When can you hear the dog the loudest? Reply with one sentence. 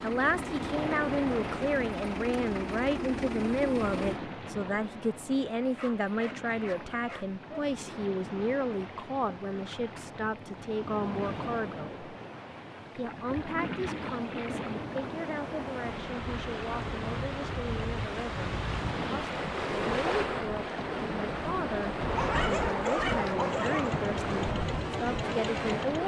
The loudest moment of the dog is at 23 seconds.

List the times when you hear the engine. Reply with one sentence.
The engine can be heard from 0.0 to 4.2 s and from 23.4 to 26.0 s.